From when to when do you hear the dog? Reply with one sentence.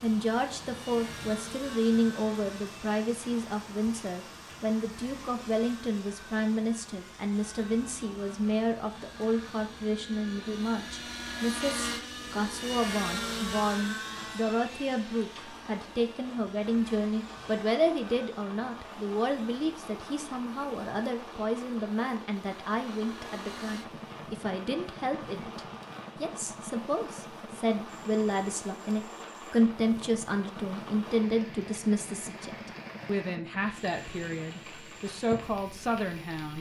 The dog can't be heard in this clip.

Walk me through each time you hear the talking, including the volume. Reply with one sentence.
The talking can be heard from 0.0 to 36.5 s, at a steady volume.